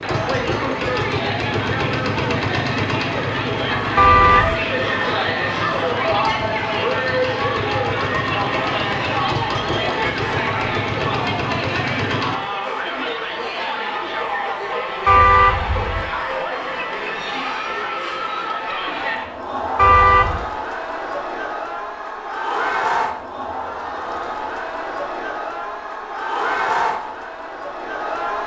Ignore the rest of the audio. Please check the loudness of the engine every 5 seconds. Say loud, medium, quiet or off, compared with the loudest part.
loud, loud, loud, off, off, off.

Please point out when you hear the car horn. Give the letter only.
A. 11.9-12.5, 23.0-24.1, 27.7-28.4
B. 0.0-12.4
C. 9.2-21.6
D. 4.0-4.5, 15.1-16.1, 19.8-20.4
D.